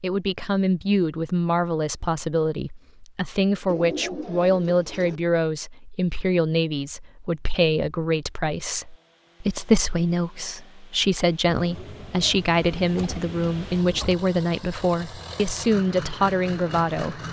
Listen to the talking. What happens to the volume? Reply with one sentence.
The loudness of the talking stays about the same.